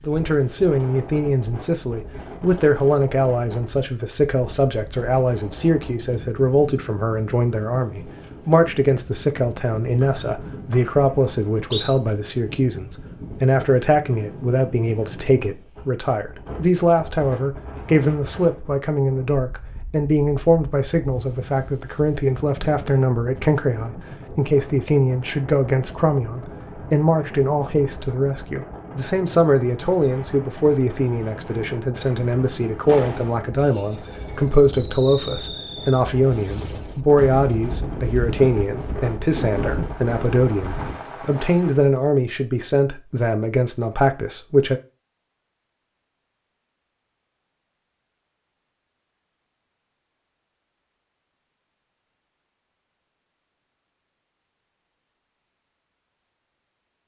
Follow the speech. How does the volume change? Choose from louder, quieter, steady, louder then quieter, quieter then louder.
steady.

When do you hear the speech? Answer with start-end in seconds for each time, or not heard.
0.1-44.8.